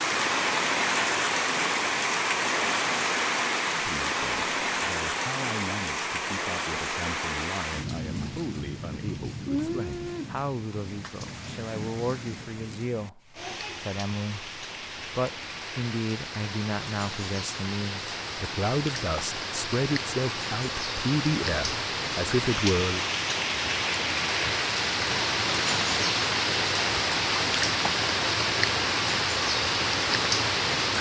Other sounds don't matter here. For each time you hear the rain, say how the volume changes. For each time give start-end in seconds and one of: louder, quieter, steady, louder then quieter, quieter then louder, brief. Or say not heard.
0.0-30.9 quieter then louder.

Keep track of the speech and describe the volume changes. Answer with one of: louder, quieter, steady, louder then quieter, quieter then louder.
louder.